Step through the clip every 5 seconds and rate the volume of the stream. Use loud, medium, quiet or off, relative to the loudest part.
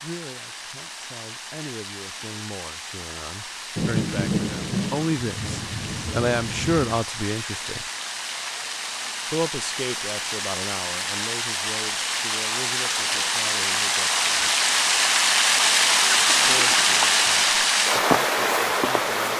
quiet, quiet, medium, loud.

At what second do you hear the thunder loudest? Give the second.
4 s.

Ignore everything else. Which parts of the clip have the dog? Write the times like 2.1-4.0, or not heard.
not heard.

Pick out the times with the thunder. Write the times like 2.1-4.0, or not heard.
3.8-7.0.